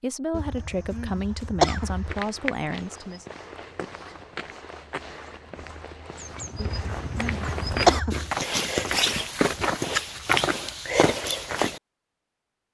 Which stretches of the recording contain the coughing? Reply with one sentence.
The coughing can be heard from 0.3 to 2.2 s and from 6.5 to 8.3 s.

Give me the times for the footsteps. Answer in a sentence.
You can hear the footsteps from 1.6 to 11.8 s.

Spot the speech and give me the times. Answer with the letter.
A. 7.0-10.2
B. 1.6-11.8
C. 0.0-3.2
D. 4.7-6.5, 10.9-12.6
C.